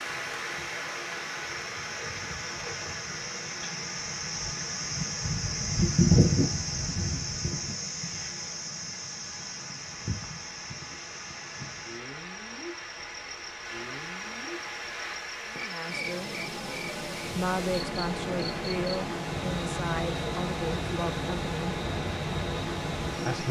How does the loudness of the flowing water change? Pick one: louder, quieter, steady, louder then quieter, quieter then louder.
quieter then louder.